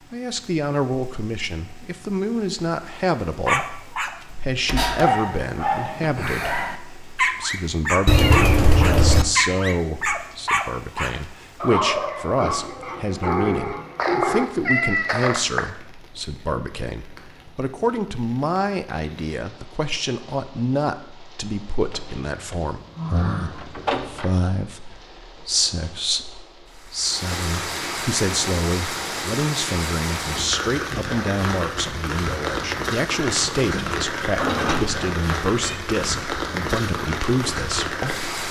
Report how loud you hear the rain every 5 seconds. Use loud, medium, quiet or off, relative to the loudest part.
quiet, quiet, quiet, quiet, quiet, loud, loud, loud.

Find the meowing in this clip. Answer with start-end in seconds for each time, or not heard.
8.1-9.2, 13.9-15.7, 33.2-35.8.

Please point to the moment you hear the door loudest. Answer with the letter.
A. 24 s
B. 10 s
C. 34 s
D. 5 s
A.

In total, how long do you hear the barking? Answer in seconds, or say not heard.
11 s.